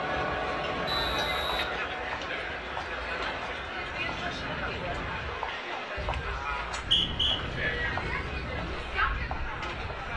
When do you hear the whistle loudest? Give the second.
7 s.